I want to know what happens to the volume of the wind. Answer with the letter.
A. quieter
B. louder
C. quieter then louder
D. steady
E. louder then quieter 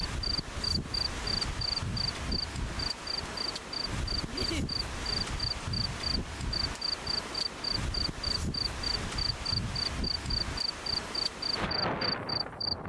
D.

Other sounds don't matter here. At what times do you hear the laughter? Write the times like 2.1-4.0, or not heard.
4.2-4.7.